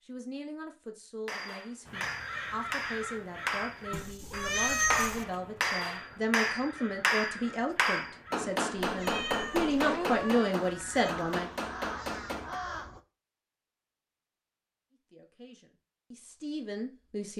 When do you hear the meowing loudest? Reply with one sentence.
The loudest moment of the meowing is at 5 seconds.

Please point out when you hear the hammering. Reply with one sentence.
The hammering can be heard from 1.2 to 12.6 s.